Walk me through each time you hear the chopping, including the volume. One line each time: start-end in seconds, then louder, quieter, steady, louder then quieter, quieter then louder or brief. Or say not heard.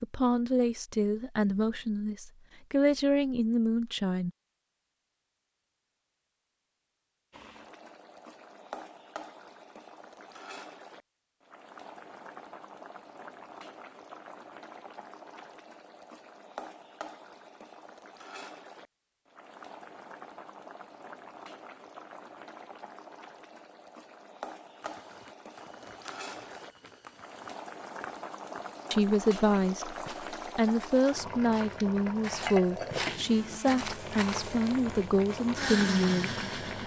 not heard.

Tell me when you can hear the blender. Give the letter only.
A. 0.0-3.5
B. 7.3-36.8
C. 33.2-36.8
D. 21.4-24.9
C.